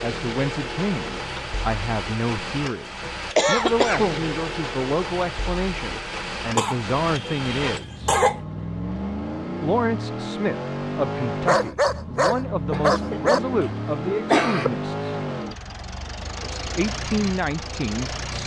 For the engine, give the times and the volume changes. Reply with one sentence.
You can hear the engine from 0.0 to 18.4 s, at a steady volume.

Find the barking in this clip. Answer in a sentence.
You can hear the barking from 11.4 to 13.4 s.